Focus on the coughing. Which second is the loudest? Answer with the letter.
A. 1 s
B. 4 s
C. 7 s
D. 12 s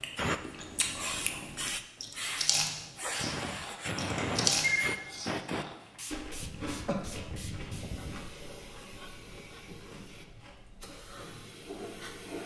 C.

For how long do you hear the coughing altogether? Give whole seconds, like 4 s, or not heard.
2 s.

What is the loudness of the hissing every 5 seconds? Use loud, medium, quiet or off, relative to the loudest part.
loud, medium, medium.